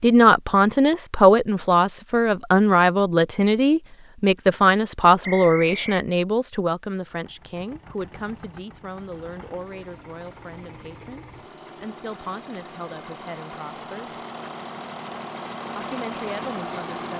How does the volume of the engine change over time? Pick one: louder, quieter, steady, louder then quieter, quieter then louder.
louder.